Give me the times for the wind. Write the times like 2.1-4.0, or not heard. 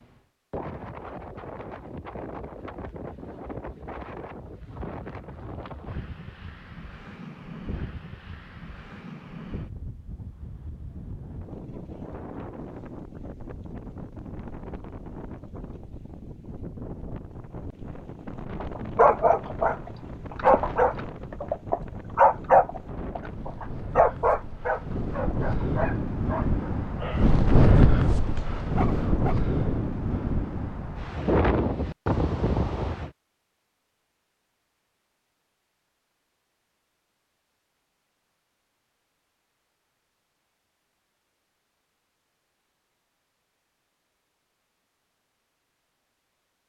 0.0-33.1.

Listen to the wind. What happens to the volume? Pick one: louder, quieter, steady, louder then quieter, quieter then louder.
louder.